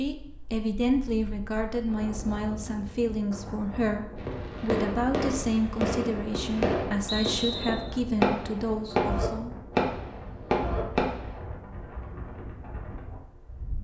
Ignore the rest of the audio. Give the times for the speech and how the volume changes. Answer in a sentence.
You can hear the speech from 0.0 to 9.6 s, at a steady volume.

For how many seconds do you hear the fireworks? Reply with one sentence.
The fireworks can be heard for 7 seconds in total.